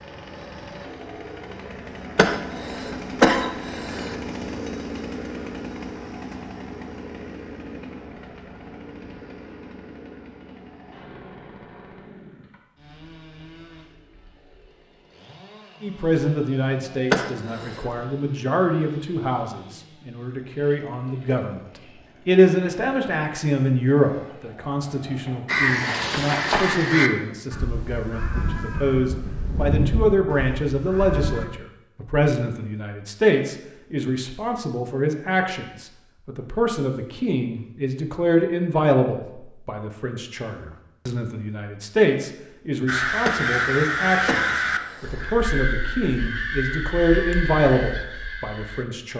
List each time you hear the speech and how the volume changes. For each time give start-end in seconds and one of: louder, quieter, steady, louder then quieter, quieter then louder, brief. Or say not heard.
15.8-49.1 steady.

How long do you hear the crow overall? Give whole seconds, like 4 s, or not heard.
12 s.